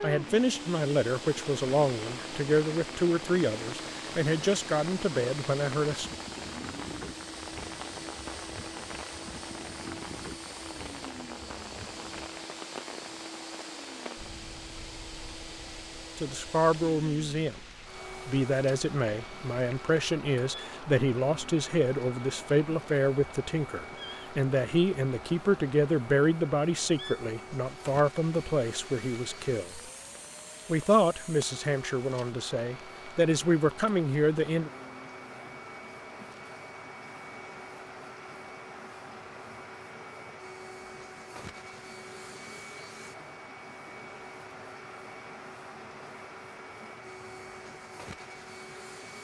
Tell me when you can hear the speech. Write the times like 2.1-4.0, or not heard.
0.0-6.1, 16.1-17.6, 18.2-29.8, 30.6-34.7.